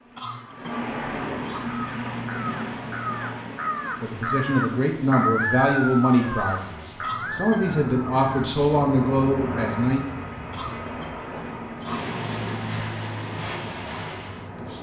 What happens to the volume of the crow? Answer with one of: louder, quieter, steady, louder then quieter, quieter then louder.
louder then quieter.